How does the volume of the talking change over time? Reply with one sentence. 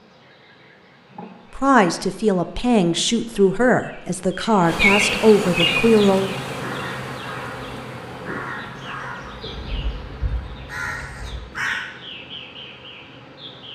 The volume of the talking stays about the same.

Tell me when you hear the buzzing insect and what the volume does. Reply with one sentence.
You can hear the buzzing insect from 0.0 to 13.7 s, getting louder then quieter.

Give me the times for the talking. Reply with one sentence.
The talking can be heard from 1.6 to 6.3 s.